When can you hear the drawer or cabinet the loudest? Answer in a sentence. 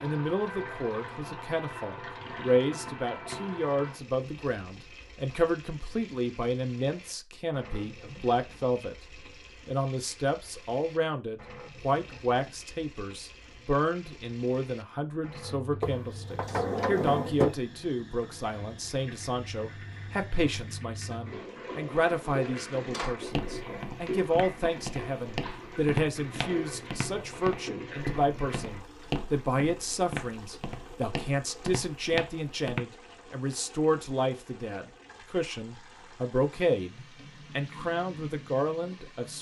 The volume of the drawer or cabinet peaks at 17 seconds.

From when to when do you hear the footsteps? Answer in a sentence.
You can hear the footsteps from 23.2 to 32.9 s.